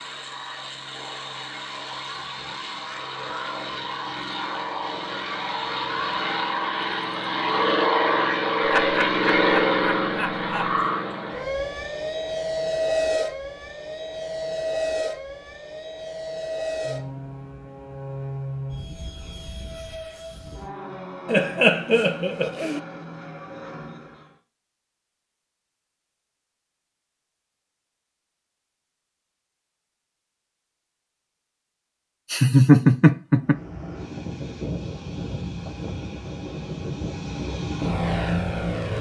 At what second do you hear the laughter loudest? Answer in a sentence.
The loudest moment of the laughter is at 33 seconds.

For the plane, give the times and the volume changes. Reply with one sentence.
The plane can be heard from 0.0 to 24.4 s, getting louder then quieter; and from 33.4 to 38.9 s, getting louder.